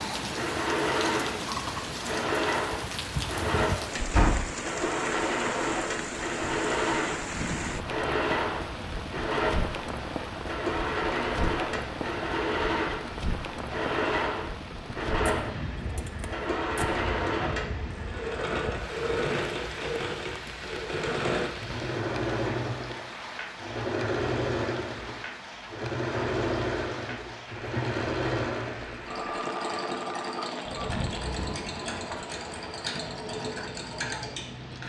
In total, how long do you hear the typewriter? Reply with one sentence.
The typewriter can't be heard in this clip.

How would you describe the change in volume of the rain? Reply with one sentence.
The loudness of the rain goes down.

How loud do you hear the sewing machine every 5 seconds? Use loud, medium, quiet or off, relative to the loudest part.
loud, loud, loud, loud, loud, loud, medium.